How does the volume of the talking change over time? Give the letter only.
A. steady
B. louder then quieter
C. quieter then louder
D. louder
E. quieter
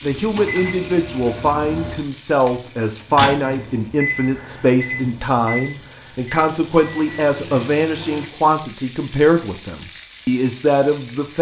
A.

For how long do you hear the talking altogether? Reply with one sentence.
You can hear the talking for 11 seconds altogether.